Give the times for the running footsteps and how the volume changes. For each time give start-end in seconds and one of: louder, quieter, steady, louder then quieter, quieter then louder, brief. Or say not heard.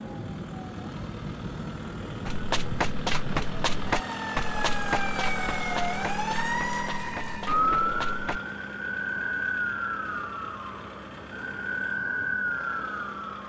2.2-8.4 quieter then louder.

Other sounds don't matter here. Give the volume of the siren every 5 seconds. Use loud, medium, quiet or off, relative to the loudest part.
medium, loud, loud.